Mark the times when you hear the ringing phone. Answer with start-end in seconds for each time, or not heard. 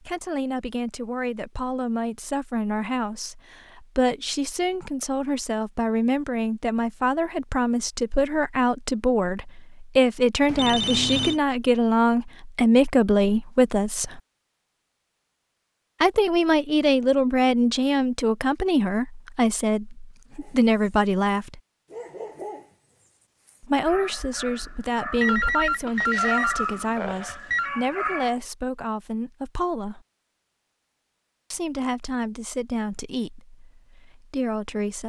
10.4-11.4, 25.2-27.7.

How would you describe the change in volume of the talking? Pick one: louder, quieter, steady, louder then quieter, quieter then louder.
louder then quieter.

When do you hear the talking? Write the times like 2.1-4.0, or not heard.
0.0-14.2, 16.0-21.6, 23.6-30.0, 31.5-35.0.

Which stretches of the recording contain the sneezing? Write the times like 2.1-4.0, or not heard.
not heard.